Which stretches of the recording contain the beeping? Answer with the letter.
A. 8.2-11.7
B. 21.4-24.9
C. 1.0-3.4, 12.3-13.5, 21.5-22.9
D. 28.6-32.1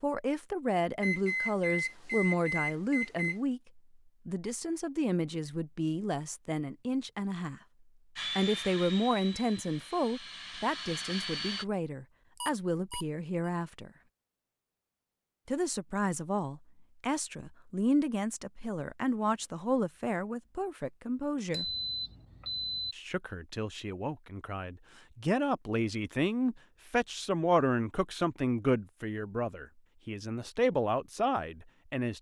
C.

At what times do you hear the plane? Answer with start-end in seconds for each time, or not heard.
8.2-11.7.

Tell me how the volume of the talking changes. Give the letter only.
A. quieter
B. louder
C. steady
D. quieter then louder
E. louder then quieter
C.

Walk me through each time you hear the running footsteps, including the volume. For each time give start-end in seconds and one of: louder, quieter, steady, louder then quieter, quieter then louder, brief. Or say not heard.
not heard.